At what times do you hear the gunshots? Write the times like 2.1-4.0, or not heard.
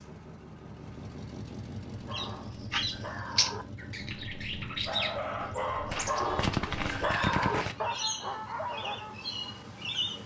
5.9-7.8.